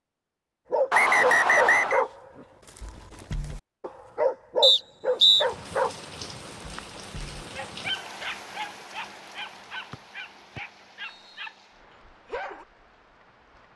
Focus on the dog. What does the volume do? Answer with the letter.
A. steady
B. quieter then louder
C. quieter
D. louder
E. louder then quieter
C.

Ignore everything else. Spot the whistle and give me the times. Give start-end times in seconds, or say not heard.
0.9-2.0, 4.6-5.5, 9.9-11.5.